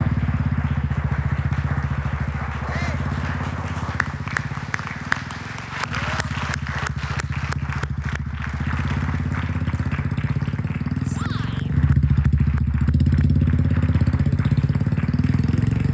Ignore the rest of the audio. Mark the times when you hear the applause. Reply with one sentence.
You can hear the applause from 0.0 to 15.8 s.